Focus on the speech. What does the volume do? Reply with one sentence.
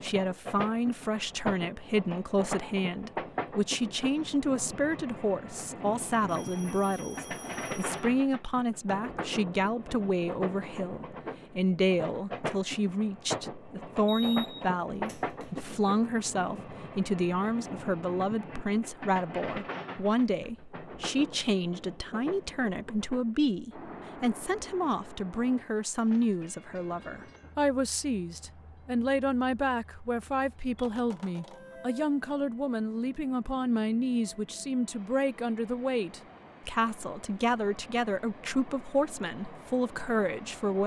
The volume of the speech stays about the same.